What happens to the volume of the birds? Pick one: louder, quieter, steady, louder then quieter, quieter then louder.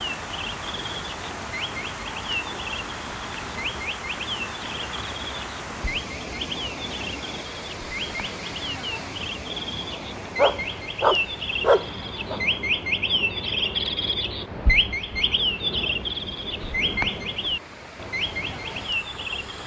louder.